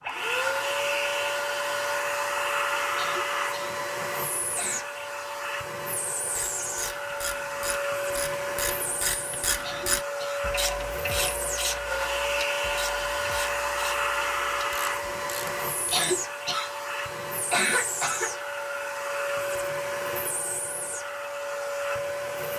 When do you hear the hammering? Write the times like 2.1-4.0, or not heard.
not heard.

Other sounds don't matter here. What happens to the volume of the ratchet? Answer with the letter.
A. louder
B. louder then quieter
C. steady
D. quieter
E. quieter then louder
B.